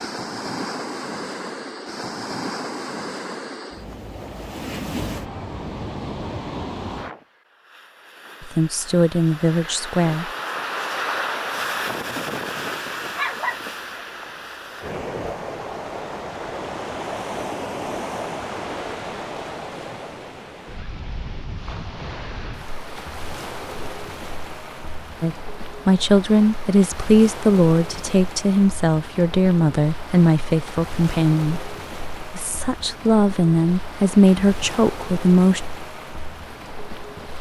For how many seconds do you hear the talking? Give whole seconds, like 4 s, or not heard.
12 s.